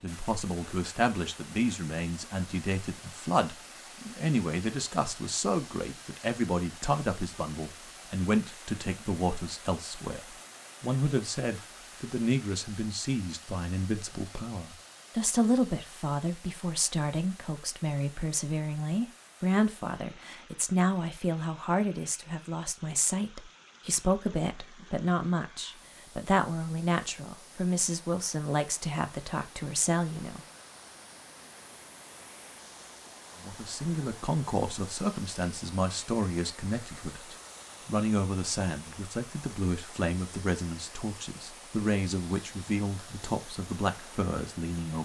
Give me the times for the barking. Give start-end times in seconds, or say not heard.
not heard.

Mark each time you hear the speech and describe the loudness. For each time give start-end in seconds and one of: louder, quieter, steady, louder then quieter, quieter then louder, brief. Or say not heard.
0.0-30.4 steady
33.4-45.0 steady.